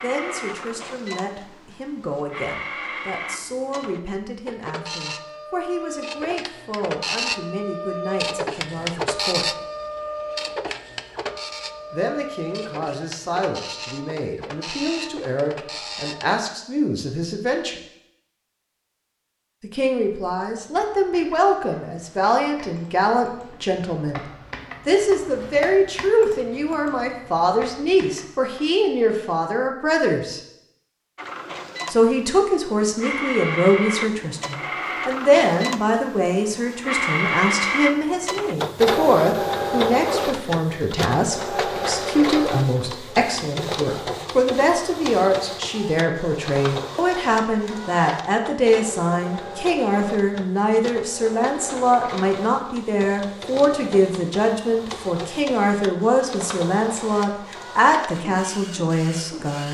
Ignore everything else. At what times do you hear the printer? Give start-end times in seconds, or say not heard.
0.0-16.4, 31.1-59.6.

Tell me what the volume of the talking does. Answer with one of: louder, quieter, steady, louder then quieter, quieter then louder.
louder.